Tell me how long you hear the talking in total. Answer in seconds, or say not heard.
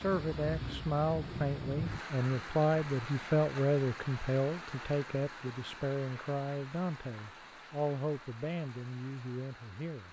10 s.